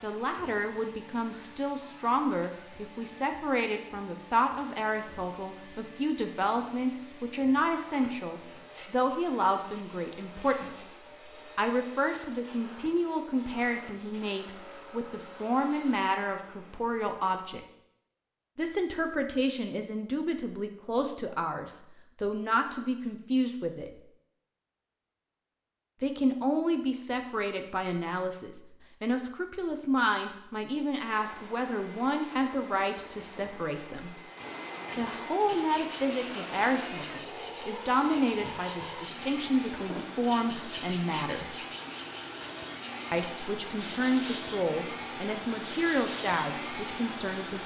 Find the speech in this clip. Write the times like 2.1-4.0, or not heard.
0.0-10.9, 11.6-17.6, 18.6-24.0, 26.0-34.1, 35.0-41.5, 43.1-47.6.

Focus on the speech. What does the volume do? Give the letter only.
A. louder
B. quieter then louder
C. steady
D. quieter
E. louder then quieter
C.